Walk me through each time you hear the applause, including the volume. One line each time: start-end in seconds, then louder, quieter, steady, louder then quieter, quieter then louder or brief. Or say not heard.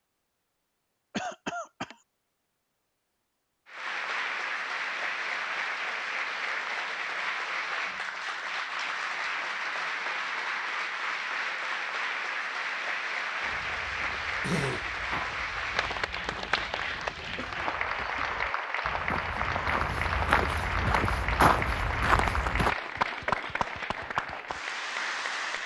3.6-25.6 steady.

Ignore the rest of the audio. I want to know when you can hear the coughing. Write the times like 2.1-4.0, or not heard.
1.1-1.9, 14.4-14.9, 17.4-18.2.